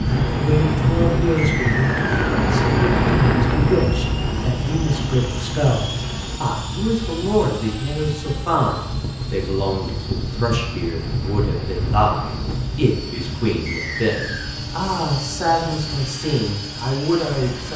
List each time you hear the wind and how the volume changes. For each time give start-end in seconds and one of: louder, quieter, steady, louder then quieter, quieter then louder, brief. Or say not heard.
0.0-17.7 quieter.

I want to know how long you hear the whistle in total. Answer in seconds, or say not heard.
2 s.